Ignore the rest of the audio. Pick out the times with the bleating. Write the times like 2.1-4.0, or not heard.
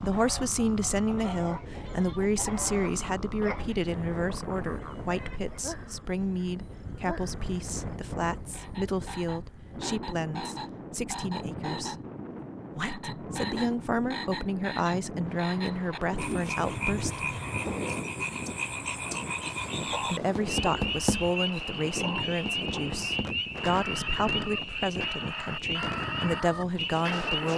not heard.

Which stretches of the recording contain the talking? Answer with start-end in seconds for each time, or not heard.
0.0-11.9, 12.8-17.2, 19.9-27.5.